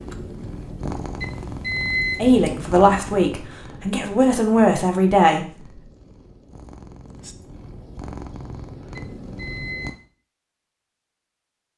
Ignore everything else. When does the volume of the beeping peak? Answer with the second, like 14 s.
2 s.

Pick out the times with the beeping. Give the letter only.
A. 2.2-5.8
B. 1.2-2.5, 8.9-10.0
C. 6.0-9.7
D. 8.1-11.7
B.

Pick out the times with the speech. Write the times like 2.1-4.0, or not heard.
2.2-5.8.